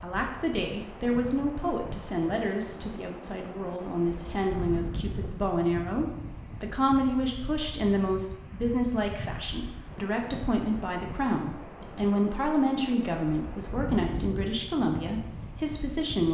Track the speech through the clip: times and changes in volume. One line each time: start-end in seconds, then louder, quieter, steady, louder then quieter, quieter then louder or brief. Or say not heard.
0.0-16.2 steady.